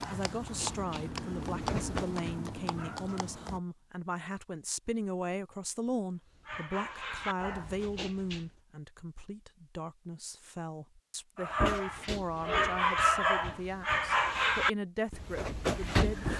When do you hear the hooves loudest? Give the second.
2 s.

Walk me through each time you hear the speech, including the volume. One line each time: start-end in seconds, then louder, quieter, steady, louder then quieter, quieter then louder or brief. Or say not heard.
0.1-16.3 steady.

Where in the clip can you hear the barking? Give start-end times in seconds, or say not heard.
0.0-3.3, 6.3-8.6, 11.3-16.3.